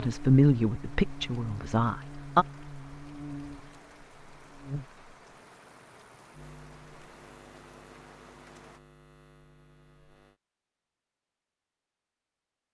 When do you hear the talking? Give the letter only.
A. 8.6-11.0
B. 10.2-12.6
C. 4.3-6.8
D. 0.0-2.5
D.